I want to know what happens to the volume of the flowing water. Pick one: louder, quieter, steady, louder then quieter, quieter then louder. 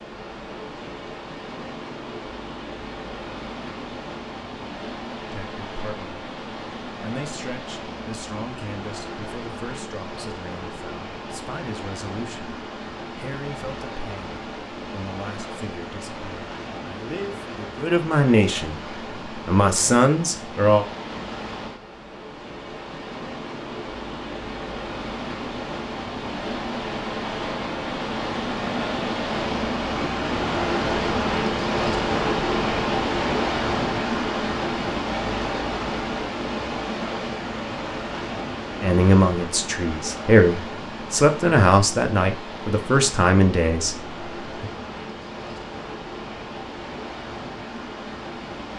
louder then quieter.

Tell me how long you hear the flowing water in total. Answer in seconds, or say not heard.
49 s.